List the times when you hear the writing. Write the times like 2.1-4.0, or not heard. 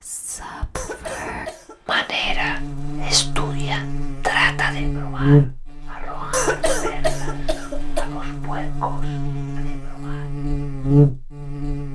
not heard.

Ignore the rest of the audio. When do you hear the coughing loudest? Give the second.
7 s.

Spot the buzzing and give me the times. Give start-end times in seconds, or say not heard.
2.2-11.8.